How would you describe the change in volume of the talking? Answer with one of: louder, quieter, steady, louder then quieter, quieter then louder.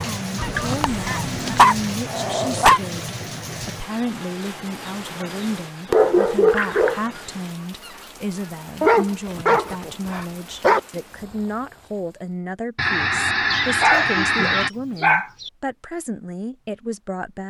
steady.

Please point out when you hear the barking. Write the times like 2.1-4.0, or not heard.
0.6-2.8, 5.9-7.0, 8.8-10.8, 13.5-15.5.